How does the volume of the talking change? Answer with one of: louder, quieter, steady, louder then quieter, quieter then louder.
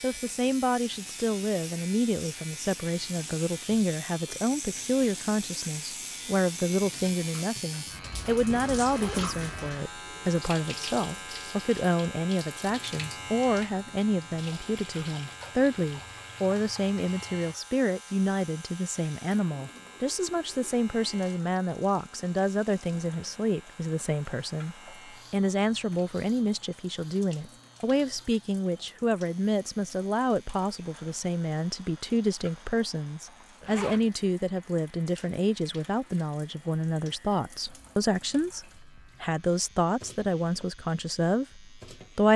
steady.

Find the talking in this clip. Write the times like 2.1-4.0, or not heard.
0.0-42.3.